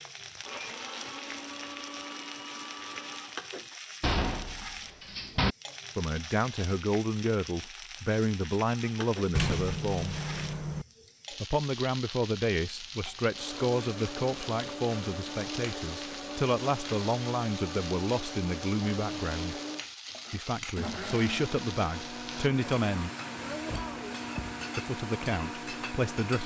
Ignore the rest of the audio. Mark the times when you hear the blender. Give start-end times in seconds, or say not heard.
0.4-3.4, 13.2-26.4.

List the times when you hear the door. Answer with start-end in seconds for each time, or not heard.
4.0-5.5, 9.3-10.8, 23.5-24.6.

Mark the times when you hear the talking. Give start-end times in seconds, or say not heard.
6.0-10.2, 11.3-19.6, 20.3-23.1, 24.8-26.4.